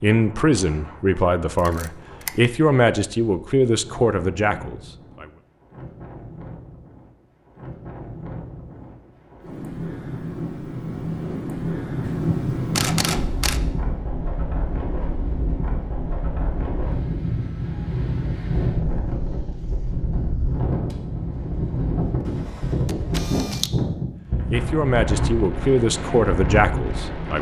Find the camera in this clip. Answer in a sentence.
You can hear the camera from 1.6 to 2.5 s, from 12.0 to 13.6 s and from 22.9 to 23.7 s.